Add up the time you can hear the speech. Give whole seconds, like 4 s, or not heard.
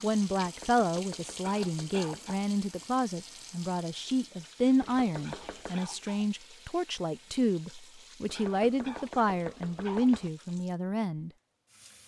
11 s.